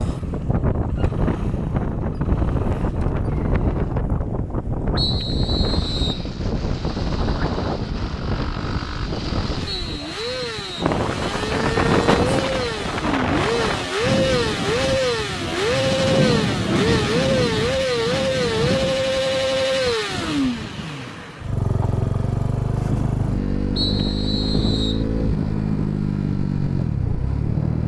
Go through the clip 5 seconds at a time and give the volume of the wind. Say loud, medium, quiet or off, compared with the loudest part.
loud, loud, loud, loud, medium, medium.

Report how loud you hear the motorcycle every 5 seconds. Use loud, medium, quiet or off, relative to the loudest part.
quiet, quiet, loud, loud, loud, loud.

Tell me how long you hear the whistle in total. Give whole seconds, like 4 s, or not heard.
4 s.